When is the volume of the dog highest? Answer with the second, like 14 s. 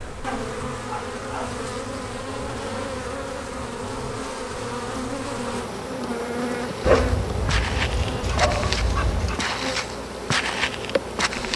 7 s.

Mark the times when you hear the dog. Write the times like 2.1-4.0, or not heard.
0.2-1.6, 6.8-9.4.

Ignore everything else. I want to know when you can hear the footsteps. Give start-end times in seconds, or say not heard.
6.6-11.5.